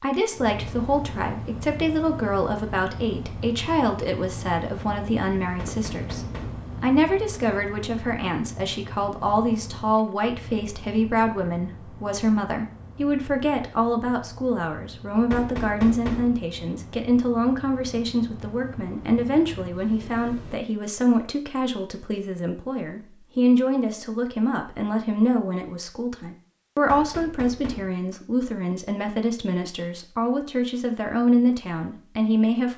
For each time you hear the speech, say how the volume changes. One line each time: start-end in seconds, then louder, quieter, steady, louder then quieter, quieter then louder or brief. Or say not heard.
0.0-32.7 steady.